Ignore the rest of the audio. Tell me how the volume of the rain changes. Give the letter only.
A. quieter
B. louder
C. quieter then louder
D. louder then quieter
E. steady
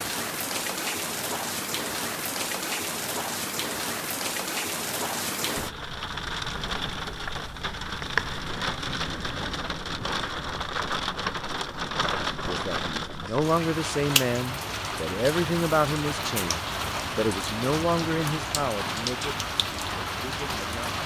E.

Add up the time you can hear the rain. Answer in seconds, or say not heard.
21 s.